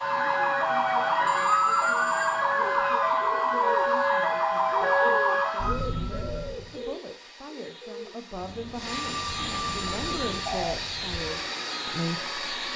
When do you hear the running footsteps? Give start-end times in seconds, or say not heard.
not heard.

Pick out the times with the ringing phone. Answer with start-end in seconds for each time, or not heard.
1.2-2.4, 9.1-10.6.